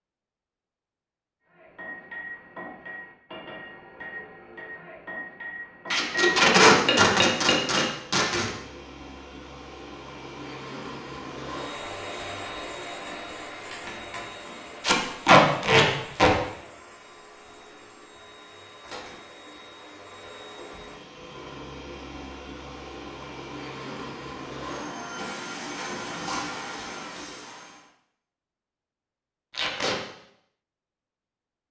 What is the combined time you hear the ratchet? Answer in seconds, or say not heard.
not heard.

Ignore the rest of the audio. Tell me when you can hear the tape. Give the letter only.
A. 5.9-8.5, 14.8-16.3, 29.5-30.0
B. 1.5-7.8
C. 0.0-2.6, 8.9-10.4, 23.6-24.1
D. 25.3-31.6
A.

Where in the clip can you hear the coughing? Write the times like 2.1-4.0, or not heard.
not heard.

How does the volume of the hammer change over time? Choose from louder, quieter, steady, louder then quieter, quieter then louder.
louder.